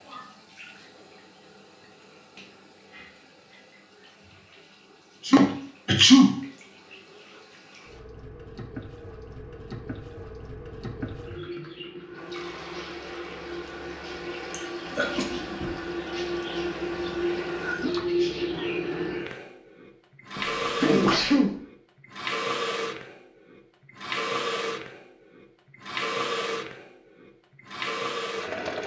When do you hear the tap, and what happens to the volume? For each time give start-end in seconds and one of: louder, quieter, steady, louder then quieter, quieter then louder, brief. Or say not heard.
0.0-28.8 louder.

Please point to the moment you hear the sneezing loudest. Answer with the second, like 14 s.
6 s.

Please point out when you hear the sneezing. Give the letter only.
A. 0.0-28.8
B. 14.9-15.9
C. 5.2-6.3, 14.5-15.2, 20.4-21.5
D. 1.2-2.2
C.